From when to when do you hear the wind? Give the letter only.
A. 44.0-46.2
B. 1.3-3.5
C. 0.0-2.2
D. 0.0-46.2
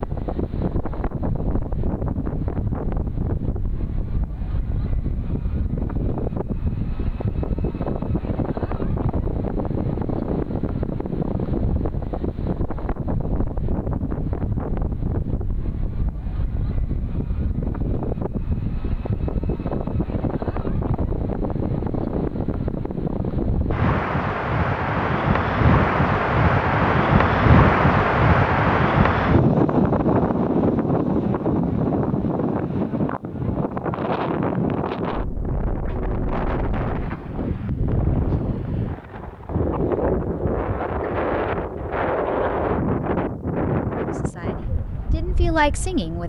D.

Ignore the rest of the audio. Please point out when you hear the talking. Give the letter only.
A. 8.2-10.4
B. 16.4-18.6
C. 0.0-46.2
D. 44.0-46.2
D.